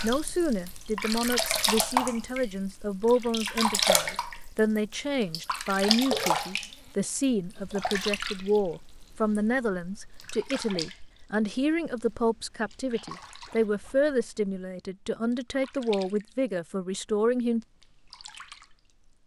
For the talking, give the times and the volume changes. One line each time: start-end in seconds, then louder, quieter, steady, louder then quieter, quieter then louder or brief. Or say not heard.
0.0-17.6 steady.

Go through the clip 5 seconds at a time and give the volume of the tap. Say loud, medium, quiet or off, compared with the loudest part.
loud, loud, quiet, quiet.